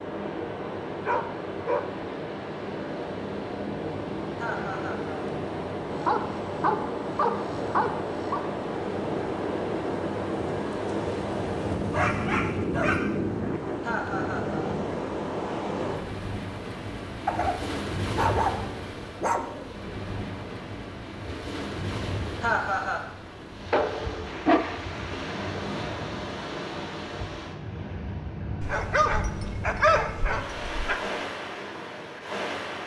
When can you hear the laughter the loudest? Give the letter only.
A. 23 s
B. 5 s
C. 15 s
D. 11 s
A.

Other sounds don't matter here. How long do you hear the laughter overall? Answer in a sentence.
You can hear the laughter for 2 seconds altogether.